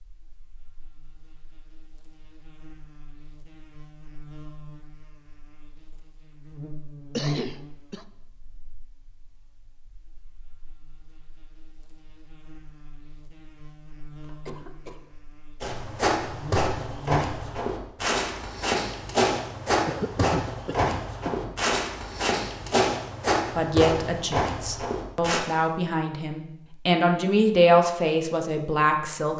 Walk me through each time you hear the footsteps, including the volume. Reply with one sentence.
The footsteps can be heard from 15.6 to 25.4 s, at a steady volume.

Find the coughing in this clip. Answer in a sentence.
You can hear the coughing from 7.2 to 8.1 s, from 14.2 to 15.1 s and from 19.9 to 21.6 s.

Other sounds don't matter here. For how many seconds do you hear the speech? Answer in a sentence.
The speech can be heard for 6 seconds in total.